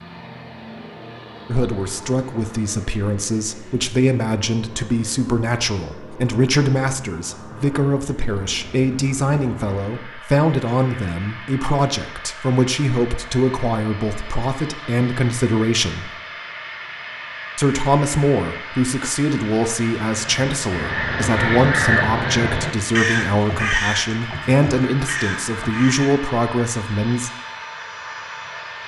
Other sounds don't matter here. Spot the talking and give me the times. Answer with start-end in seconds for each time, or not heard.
1.4-16.1, 17.6-27.3.